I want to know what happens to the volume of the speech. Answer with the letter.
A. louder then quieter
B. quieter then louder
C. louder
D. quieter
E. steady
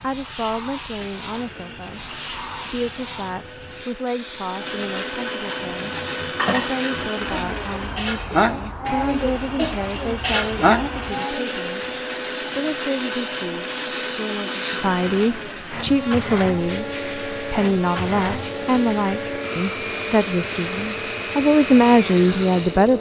C.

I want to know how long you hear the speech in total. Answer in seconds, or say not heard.
22 s.